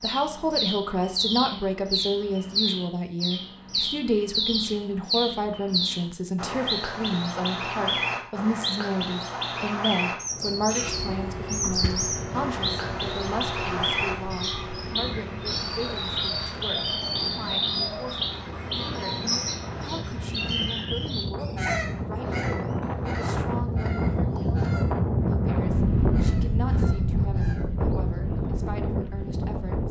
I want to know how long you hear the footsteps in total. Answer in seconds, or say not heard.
not heard.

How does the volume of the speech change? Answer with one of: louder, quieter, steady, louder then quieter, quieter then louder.
quieter.